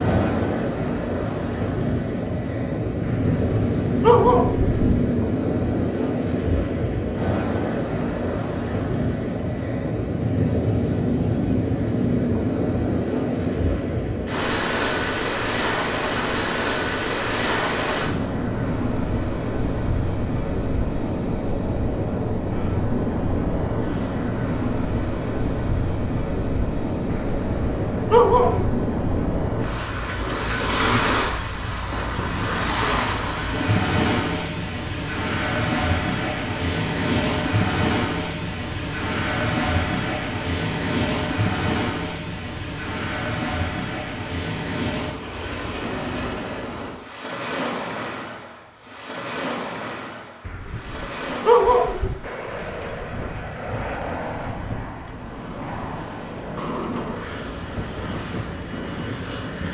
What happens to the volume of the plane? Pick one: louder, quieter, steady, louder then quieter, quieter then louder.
steady.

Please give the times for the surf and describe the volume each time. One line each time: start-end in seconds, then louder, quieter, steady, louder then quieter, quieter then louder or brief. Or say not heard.
0.0-59.7 quieter.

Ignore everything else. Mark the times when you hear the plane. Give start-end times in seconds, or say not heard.
52.2-59.7.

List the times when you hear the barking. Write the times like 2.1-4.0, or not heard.
3.0-4.8, 27.1-28.7, 50.5-52.3.